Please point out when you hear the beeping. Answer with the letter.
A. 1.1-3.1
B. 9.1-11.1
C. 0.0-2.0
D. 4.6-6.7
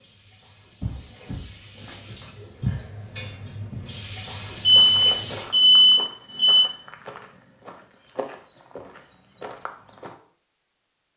D.